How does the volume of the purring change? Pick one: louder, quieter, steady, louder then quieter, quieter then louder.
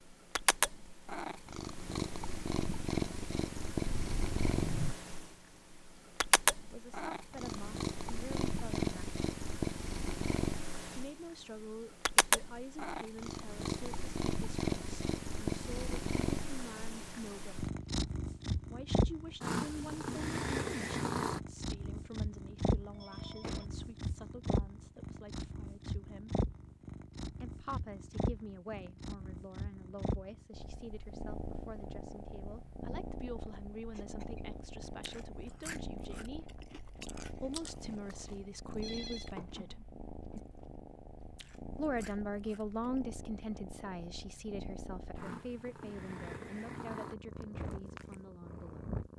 quieter.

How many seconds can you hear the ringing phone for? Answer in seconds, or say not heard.
2 s.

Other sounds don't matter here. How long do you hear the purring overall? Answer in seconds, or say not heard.
49 s.